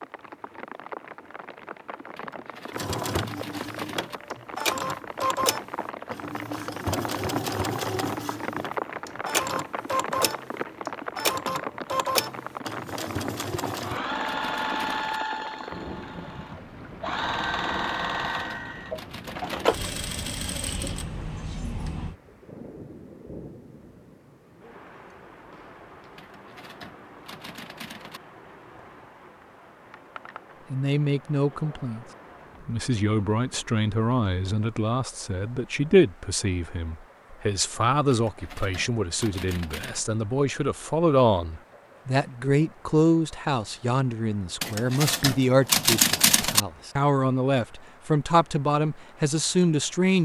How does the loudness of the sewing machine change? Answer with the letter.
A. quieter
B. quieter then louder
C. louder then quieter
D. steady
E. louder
D.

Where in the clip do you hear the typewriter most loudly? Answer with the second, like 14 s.
46 s.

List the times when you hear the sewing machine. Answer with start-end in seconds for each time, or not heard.
2.7-22.1.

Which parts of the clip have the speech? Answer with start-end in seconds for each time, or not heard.
30.7-32.0, 32.6-50.1.